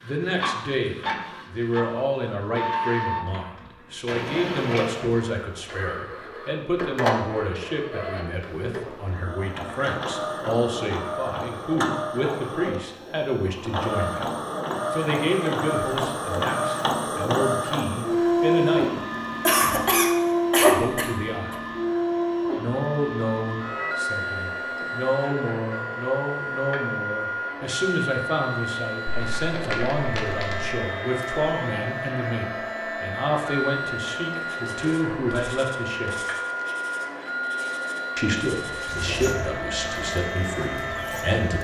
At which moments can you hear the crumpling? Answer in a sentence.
You can hear the crumpling from 29.1 to 30.8 s.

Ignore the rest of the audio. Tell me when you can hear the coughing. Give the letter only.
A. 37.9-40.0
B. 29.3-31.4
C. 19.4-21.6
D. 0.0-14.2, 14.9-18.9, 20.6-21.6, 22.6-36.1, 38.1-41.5
C.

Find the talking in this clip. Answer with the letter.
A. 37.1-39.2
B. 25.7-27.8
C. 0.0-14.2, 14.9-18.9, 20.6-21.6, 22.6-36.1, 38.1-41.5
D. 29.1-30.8
C.